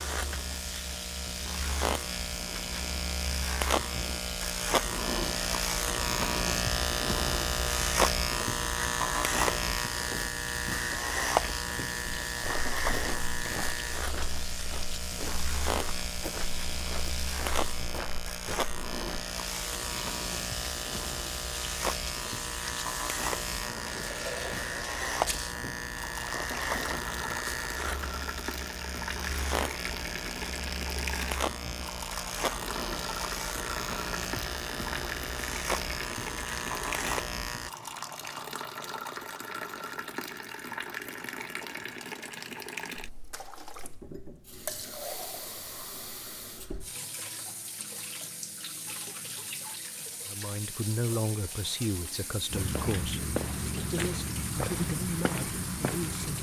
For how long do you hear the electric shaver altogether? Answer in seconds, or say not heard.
38 s.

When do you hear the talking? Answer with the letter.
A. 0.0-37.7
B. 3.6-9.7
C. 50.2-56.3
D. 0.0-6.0
C.